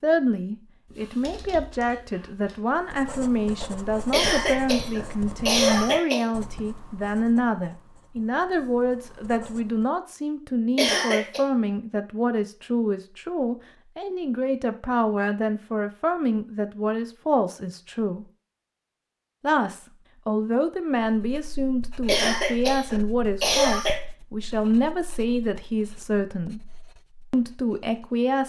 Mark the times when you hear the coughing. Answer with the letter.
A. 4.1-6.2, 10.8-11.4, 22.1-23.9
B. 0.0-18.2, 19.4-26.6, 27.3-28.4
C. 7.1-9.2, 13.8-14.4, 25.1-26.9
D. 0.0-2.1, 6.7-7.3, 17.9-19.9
A.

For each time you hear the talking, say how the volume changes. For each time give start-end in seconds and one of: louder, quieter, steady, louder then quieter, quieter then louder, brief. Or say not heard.
0.0-18.2 steady
19.4-26.6 steady
27.3-28.4 brief.